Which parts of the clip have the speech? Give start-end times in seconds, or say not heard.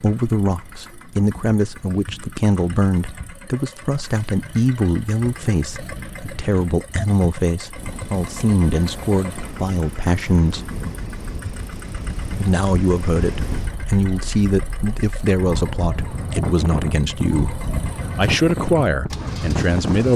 0.0-10.7, 12.3-20.1.